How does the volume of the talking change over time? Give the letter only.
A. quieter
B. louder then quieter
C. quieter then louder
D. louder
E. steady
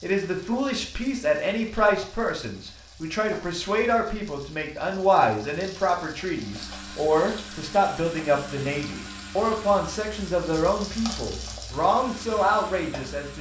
E.